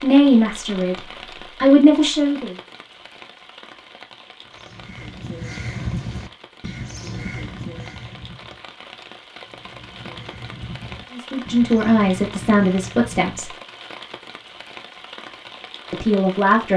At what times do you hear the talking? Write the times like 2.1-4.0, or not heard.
0.0-2.5, 11.1-13.5, 15.9-16.7.